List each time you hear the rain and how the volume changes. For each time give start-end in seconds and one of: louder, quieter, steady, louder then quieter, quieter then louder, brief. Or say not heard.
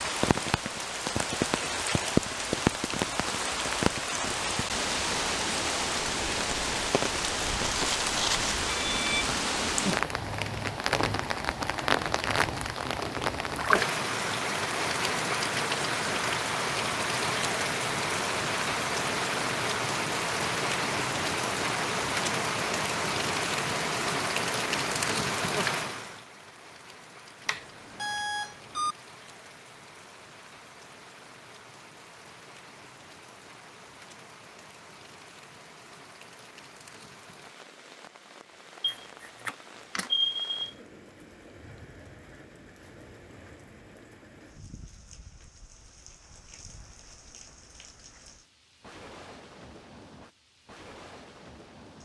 0.0-52.0 quieter.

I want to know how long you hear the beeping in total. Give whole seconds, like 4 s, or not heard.
5 s.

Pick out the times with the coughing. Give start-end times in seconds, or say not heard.
not heard.